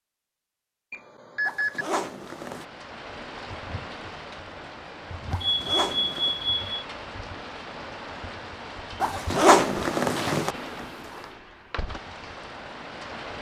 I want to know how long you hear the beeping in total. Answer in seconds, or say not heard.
3 s.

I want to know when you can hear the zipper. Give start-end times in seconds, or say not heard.
1.4-2.6, 5.3-6.3, 9.0-10.6.